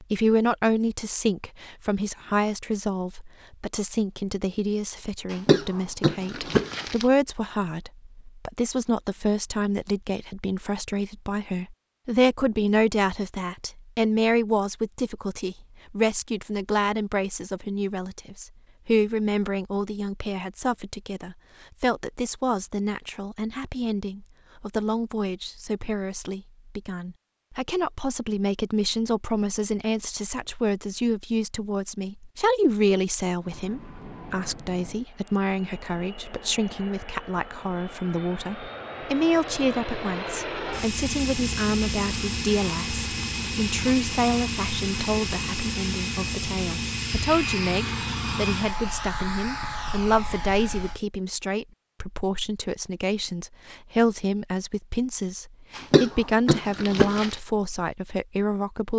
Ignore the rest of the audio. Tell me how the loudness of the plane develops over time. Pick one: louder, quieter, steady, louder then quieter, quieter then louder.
louder.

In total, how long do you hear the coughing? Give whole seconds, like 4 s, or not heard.
3 s.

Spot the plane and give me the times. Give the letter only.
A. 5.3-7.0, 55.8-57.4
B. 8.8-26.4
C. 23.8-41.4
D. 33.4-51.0
D.